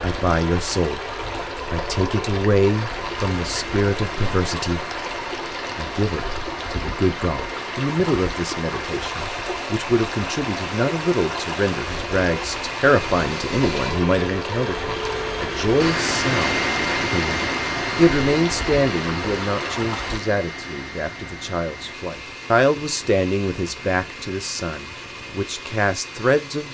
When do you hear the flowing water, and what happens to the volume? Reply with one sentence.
You can hear the flowing water from 0.0 to 20.2 s, at a steady volume.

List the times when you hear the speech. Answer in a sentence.
The speech can be heard from 0.0 to 4.8 s and from 5.8 to 26.7 s.